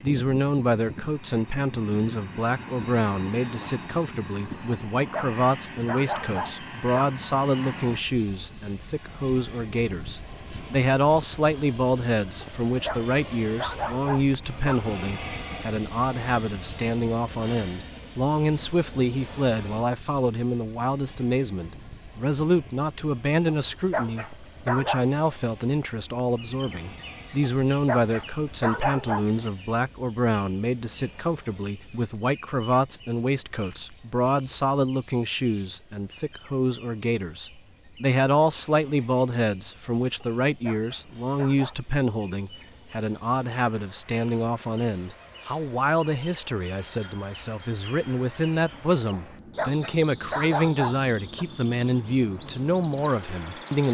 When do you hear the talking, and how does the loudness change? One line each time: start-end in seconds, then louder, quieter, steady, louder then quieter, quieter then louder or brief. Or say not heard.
0.0-53.9 steady.